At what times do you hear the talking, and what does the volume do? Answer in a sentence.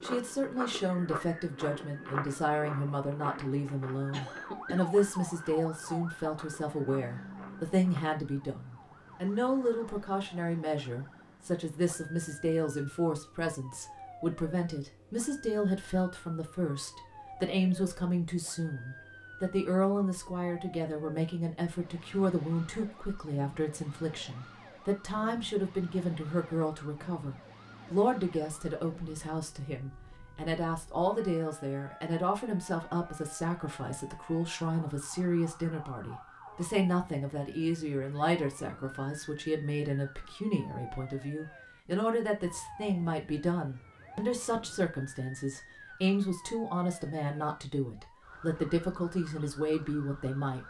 The talking can be heard from 0.0 to 50.6 s, at a steady volume.